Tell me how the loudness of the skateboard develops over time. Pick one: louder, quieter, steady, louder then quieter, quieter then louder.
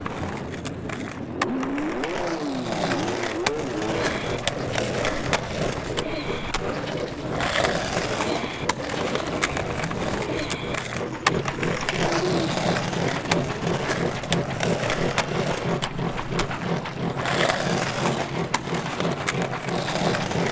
steady.